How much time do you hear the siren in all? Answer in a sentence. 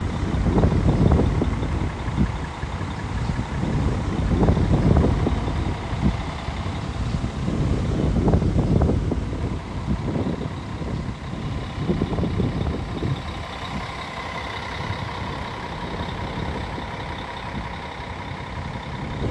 You can't hear the siren here.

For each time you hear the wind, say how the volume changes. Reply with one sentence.
The wind can be heard from 0.0 to 19.2 s, getting quieter.